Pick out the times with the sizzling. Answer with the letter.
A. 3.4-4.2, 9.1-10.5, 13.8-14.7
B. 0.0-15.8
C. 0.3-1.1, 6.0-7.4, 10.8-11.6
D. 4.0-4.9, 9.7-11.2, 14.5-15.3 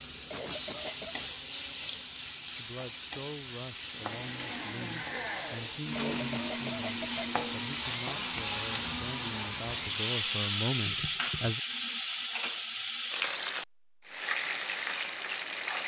B.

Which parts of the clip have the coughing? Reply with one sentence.
The coughing can be heard from 0.3 to 1.1 s, from 6.0 to 7.4 s and from 10.8 to 11.6 s.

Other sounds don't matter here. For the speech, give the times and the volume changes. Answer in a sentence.
The speech can be heard from 2.5 to 11.6 s, getting louder.